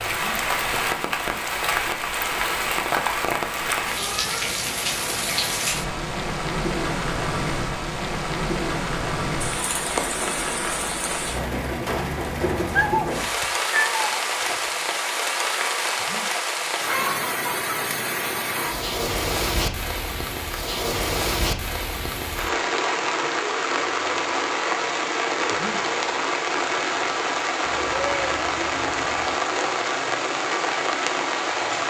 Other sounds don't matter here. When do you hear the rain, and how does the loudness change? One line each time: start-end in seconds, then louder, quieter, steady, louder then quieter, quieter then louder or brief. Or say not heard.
0.0-31.8 steady.